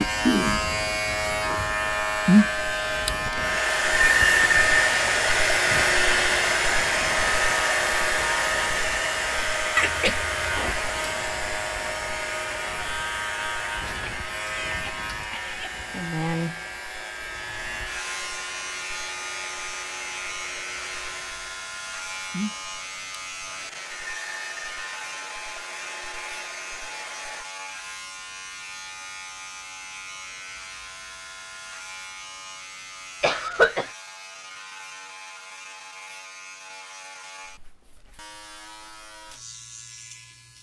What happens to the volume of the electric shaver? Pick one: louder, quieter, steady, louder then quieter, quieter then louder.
quieter.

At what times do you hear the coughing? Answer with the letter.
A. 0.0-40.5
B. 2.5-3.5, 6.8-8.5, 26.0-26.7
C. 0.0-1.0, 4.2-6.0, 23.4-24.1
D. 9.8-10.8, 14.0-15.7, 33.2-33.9
D.